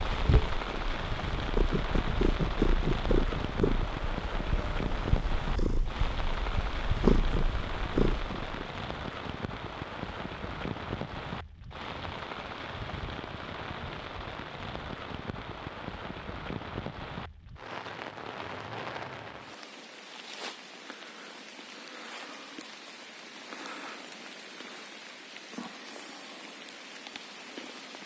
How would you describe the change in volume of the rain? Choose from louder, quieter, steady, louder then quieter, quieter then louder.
quieter.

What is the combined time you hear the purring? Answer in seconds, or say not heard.
9 s.